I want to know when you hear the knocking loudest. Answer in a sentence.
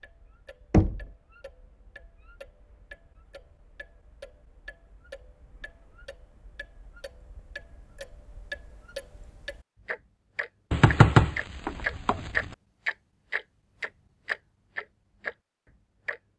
The loudest moment of the knocking is at 11 seconds.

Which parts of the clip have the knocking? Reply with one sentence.
The knocking can be heard from 0.7 to 1.1 s and from 10.7 to 12.4 s.